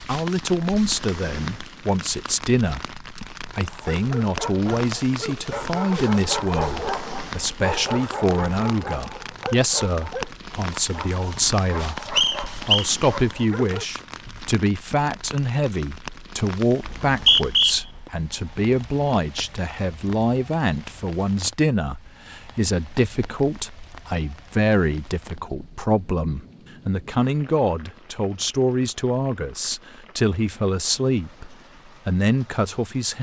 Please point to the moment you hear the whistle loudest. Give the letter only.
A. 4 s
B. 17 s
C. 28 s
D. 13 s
B.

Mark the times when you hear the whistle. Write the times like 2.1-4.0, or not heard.
12.2-12.9, 16.9-17.8.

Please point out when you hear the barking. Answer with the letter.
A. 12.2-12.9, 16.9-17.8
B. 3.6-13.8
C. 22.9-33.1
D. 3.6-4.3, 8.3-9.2
B.